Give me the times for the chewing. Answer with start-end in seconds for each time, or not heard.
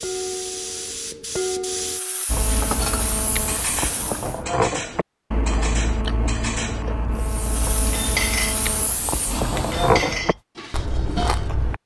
2.2-11.8.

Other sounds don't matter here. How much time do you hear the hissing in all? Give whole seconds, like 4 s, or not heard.
8 s.